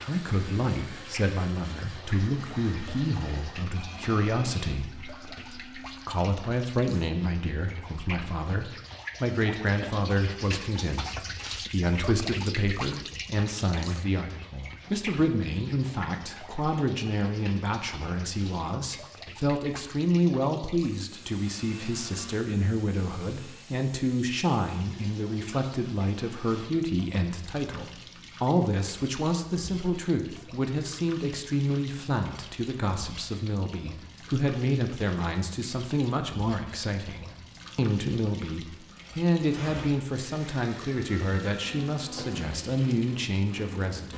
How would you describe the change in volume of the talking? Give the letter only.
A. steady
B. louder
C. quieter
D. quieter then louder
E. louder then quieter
A.